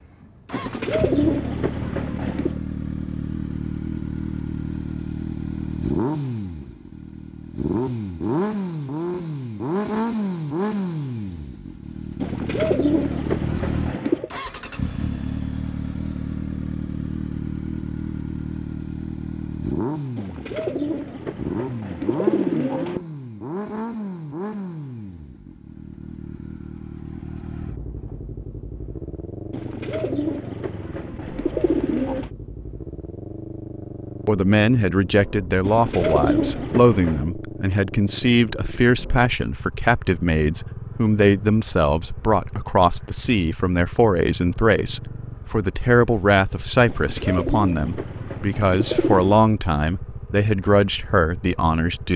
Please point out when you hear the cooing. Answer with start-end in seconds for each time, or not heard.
0.5-2.6, 12.2-14.3, 20.1-23.0, 29.5-32.3, 35.6-37.2, 46.9-49.4.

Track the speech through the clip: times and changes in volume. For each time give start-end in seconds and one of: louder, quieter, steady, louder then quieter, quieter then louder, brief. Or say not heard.
34.2-52.1 steady.